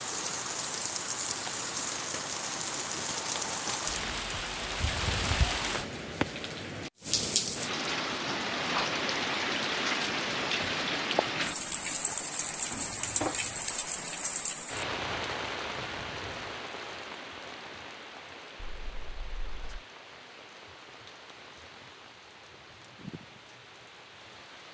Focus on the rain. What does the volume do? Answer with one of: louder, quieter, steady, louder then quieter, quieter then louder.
quieter.